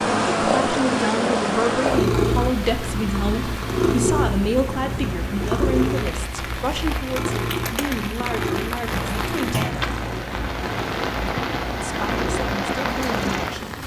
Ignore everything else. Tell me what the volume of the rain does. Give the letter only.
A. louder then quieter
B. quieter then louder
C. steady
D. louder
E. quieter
D.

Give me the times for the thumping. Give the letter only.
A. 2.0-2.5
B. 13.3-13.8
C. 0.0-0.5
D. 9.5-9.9
D.